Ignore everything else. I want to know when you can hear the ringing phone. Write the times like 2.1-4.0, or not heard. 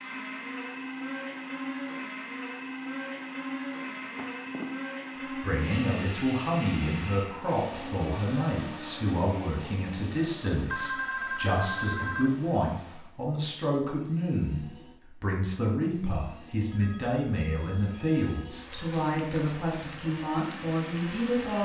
4.0-4.7, 10.7-12.3, 16.7-18.6.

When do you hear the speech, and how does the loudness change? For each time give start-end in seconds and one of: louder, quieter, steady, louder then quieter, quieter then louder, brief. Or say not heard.
5.3-21.6 steady.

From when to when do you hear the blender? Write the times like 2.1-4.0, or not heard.
0.0-21.6.